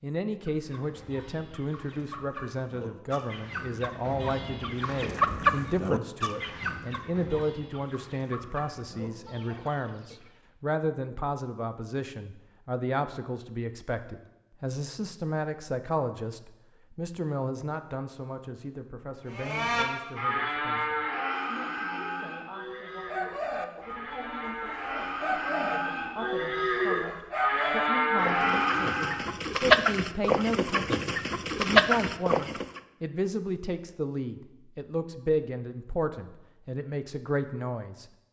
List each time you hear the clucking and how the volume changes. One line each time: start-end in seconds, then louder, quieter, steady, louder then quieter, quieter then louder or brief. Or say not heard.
0.4-10.3 louder then quieter
22.9-32.8 louder.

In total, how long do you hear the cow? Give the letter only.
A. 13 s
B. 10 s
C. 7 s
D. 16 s
B.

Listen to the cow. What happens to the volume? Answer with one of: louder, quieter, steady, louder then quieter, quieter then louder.
quieter then louder.